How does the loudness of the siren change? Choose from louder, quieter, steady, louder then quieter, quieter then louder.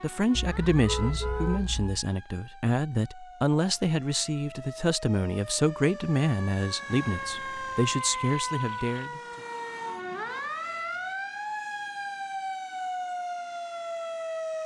louder.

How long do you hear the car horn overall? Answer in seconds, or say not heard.
2 s.